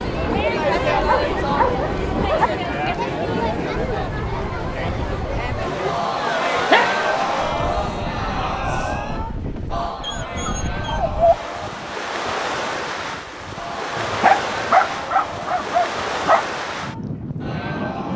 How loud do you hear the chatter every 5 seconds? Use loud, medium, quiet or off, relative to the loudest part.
loud, loud, medium, medium.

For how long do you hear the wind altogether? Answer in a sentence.
You can hear the wind for 18 seconds altogether.